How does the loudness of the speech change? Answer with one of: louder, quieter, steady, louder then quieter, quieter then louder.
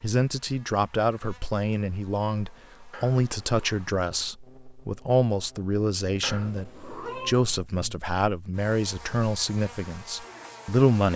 steady.